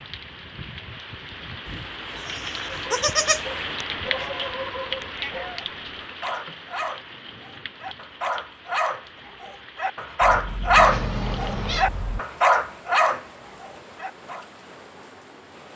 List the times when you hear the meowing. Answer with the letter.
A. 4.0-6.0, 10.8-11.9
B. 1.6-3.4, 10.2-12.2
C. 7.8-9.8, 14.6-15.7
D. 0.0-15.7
A.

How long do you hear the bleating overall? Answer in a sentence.
You can hear the bleating for 4 seconds altogether.